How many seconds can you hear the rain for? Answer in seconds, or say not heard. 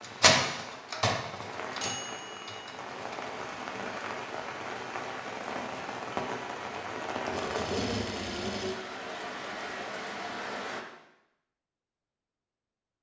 11 s.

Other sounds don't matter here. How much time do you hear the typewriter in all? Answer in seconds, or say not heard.
3 s.